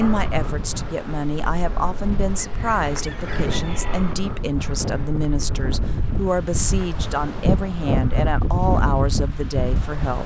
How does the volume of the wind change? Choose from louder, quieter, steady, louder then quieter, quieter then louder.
louder.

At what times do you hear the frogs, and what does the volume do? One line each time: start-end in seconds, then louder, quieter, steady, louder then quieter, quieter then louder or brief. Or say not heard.
not heard.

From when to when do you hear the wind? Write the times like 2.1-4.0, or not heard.
0.0-10.2.